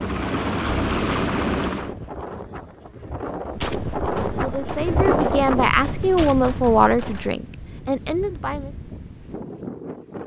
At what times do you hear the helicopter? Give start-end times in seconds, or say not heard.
0.0-1.9.